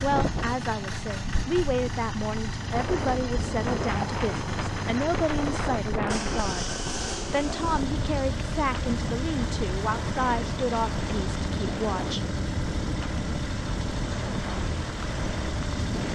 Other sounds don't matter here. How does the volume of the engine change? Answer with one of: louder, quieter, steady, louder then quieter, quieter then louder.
steady.